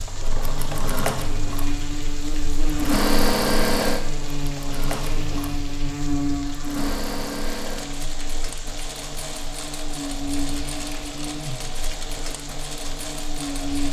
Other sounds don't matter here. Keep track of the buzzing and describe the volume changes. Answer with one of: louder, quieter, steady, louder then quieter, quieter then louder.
quieter.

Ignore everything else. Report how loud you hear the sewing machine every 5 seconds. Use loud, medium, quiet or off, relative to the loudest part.
loud, medium, medium.